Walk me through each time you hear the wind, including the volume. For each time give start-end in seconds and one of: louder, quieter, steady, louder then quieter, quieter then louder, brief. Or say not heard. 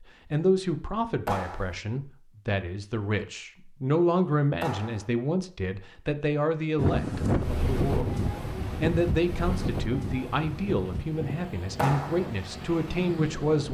6.8-13.7 quieter.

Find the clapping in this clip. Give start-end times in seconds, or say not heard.
1.2-1.8, 4.6-5.1, 11.8-12.2.